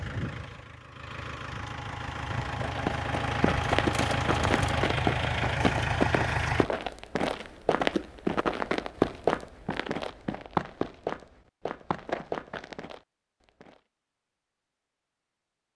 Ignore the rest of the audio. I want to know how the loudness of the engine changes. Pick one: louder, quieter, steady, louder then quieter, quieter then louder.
louder.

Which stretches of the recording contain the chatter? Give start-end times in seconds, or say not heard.
not heard.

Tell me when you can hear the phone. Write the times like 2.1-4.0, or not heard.
not heard.